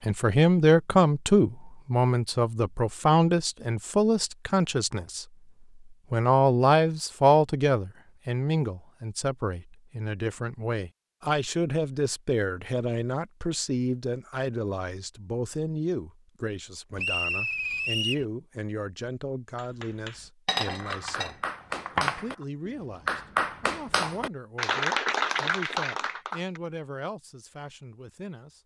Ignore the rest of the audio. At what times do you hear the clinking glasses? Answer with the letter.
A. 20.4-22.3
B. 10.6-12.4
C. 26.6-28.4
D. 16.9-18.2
A.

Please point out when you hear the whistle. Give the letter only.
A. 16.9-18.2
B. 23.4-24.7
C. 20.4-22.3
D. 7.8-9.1
A.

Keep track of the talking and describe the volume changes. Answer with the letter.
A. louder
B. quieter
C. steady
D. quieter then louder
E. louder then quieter
B.